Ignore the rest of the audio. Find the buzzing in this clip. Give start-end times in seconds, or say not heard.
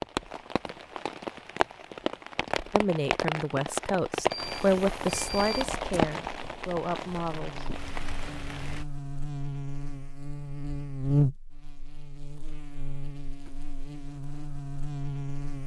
7.3-15.6.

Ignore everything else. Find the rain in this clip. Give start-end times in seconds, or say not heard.
0.0-8.8.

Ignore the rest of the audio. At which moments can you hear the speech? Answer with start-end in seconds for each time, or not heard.
2.7-7.7.